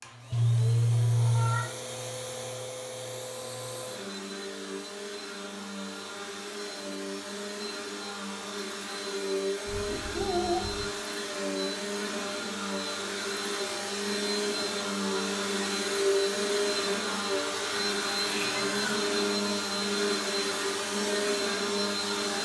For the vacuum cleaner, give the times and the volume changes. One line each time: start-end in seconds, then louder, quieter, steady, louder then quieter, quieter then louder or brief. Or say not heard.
0.0-22.4 louder.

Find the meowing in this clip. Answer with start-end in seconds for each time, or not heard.
0.3-1.7, 9.7-10.8, 17.7-19.3.